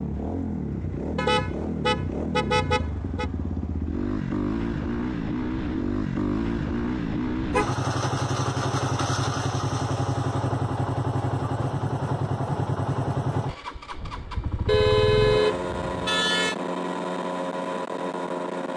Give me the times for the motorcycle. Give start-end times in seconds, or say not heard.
0.0-18.7.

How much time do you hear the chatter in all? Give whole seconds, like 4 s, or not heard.
not heard.